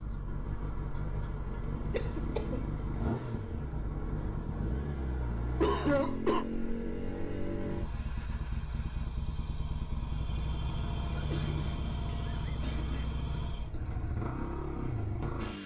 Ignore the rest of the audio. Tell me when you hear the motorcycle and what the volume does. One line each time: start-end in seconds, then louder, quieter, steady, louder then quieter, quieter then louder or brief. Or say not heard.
0.0-15.6 steady.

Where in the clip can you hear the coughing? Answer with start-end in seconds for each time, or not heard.
1.9-2.6, 5.6-6.5, 11.1-13.1.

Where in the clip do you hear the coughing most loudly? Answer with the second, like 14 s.
6 s.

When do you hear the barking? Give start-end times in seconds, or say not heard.
not heard.